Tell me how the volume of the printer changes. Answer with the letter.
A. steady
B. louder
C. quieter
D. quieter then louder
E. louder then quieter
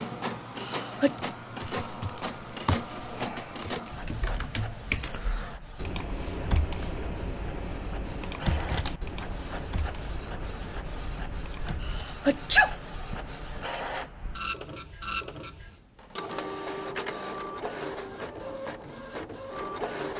D.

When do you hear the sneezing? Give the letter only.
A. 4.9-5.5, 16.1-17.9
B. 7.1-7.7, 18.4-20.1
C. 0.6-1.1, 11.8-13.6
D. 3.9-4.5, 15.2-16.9
C.